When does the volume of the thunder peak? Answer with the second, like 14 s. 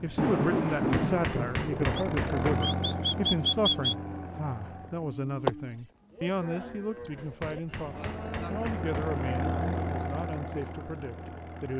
1 s.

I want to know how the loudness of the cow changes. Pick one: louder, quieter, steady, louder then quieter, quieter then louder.
quieter.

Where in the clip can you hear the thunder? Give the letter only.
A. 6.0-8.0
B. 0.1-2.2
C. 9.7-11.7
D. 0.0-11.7
B.